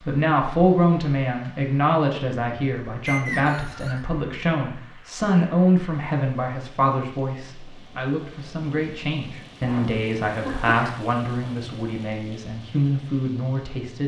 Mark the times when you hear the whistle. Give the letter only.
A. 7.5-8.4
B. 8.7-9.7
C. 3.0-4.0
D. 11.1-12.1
C.